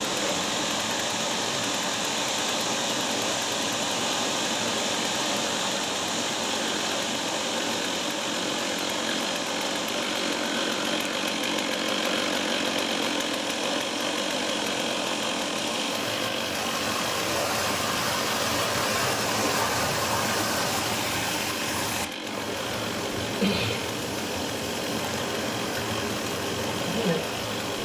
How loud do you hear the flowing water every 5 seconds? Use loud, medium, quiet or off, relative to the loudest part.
loud, loud, medium, loud, loud, loud.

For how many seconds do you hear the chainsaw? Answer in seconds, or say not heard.
28 s.